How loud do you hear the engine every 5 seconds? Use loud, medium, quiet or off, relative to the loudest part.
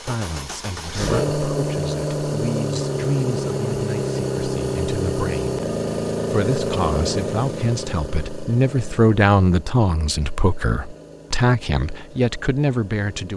loud, loud, quiet.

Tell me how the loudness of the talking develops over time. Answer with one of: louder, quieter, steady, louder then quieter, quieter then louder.
louder.